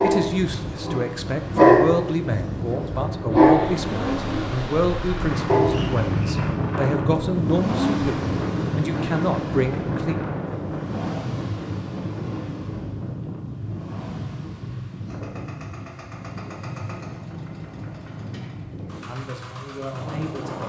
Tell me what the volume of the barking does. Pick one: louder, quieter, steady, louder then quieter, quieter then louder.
louder then quieter.